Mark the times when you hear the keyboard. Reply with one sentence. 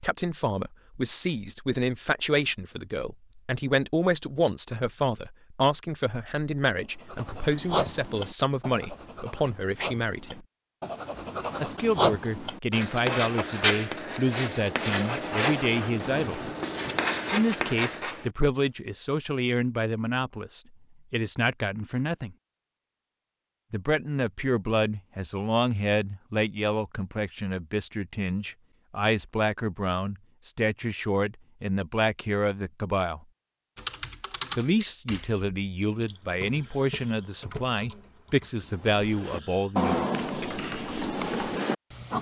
You can hear the keyboard from 33.8 to 41.6 s.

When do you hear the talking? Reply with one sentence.
You can hear the talking from 0.0 to 10.4 s, from 11.6 to 16.5 s, from 17.3 to 22.4 s, from 23.7 to 33.2 s and from 34.5 to 40.0 s.